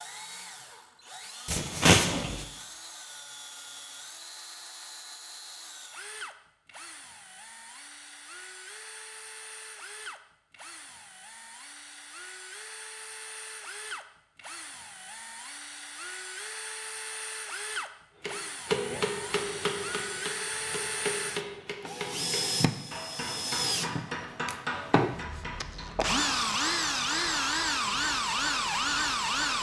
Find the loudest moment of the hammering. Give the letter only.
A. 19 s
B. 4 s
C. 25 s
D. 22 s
A.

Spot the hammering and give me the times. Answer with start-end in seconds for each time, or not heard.
18.2-26.1.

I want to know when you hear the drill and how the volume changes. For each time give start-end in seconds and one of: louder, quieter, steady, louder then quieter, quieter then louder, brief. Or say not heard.
0.0-29.5 louder.